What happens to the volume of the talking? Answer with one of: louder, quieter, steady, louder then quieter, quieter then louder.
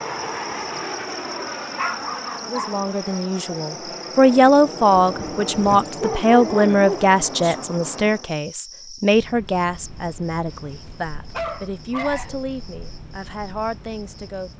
quieter.